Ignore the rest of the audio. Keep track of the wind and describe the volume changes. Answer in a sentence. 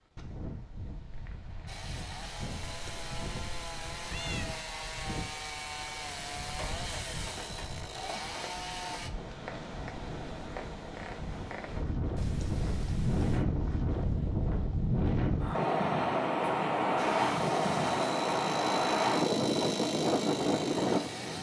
The volume of the wind goes up.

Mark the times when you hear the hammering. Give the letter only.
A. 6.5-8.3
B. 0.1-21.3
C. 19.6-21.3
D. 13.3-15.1
A.